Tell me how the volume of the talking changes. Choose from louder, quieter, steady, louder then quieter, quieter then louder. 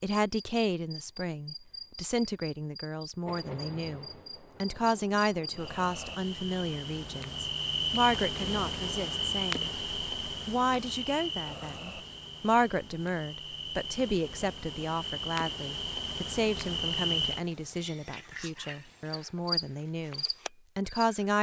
steady.